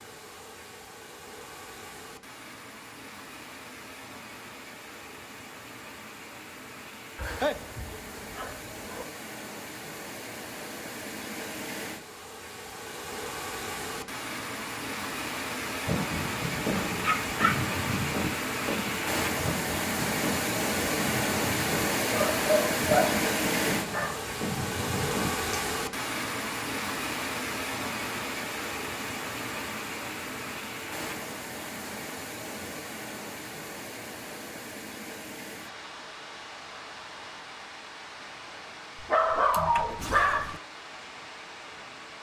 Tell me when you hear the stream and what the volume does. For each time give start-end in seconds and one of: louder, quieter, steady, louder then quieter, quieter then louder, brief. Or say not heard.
0.0-42.1 louder then quieter.